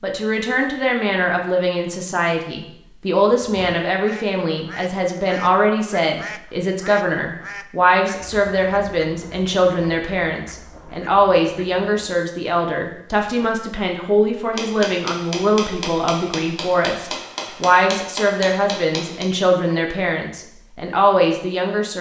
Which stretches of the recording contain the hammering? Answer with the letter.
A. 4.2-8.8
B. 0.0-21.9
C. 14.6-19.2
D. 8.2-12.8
C.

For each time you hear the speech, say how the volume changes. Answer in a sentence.
You can hear the speech from 0.0 to 21.9 s, at a steady volume.